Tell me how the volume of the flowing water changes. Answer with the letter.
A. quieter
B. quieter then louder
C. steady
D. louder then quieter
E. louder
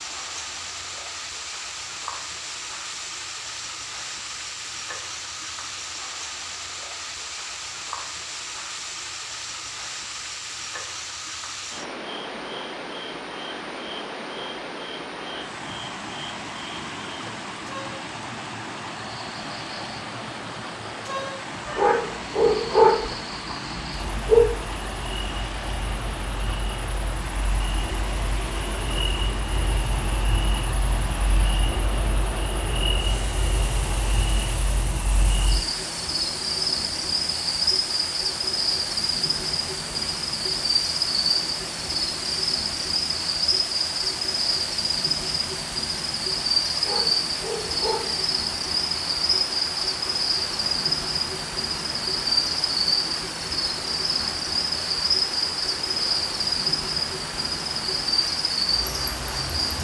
C.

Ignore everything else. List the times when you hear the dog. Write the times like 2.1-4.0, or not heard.
21.6-24.5, 46.8-48.1.